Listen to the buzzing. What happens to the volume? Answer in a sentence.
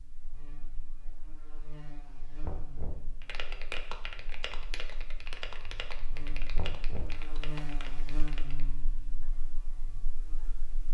The loudness of the buzzing goes up, then down.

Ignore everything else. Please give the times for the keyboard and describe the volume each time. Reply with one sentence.
You can hear the keyboard from 3.2 to 8.7 s, getting quieter.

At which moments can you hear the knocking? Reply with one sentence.
The knocking can be heard from 2.4 to 3.2 s and from 6.5 to 7.3 s.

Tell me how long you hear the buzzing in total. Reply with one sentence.
You can hear the buzzing for 11 seconds altogether.